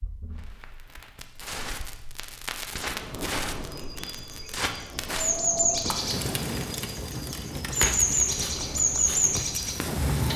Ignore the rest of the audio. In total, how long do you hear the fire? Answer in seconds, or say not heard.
10 s.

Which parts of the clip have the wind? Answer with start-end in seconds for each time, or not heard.
2.7-10.2.